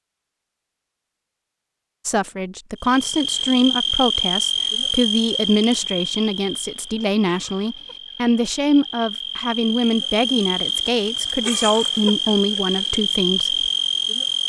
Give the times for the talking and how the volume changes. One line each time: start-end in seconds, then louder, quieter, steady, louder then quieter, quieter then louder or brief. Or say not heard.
2.0-13.7 steady.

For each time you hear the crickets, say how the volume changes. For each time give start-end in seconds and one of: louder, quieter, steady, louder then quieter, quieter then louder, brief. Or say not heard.
2.8-14.4 quieter then louder.